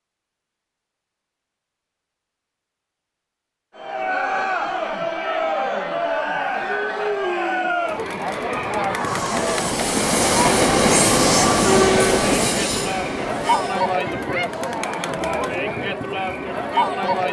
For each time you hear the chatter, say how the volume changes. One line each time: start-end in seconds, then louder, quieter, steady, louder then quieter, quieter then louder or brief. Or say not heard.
3.8-17.2 steady.